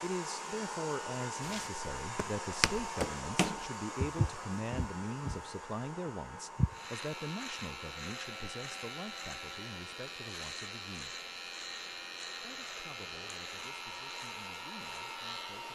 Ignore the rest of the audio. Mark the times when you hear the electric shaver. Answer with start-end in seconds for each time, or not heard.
6.7-15.7.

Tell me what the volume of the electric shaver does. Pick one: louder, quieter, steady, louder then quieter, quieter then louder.
steady.